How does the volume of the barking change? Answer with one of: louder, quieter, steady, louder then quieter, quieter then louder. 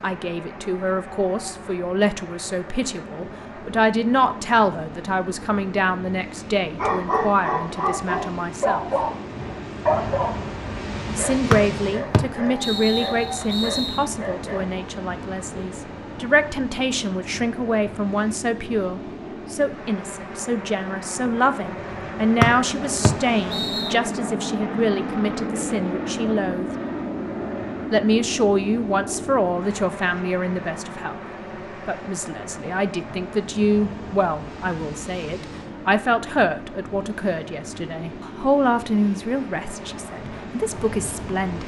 quieter.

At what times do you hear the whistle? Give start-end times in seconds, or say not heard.
11.5-14.1, 22.4-23.9.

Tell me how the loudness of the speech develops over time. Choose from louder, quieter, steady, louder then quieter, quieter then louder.
steady.